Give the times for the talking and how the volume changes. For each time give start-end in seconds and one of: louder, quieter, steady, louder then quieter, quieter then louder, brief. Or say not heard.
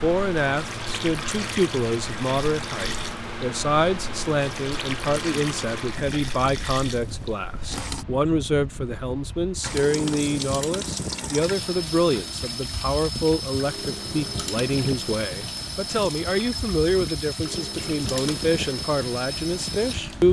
0.0-20.2 steady.